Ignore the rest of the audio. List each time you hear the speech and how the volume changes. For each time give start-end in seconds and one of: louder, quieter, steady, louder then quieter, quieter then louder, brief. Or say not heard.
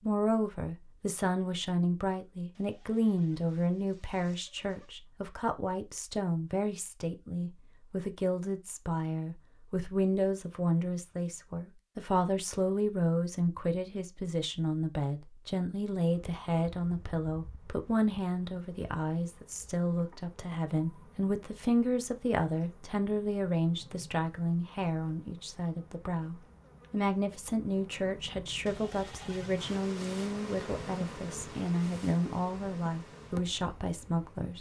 0.0-34.5 steady.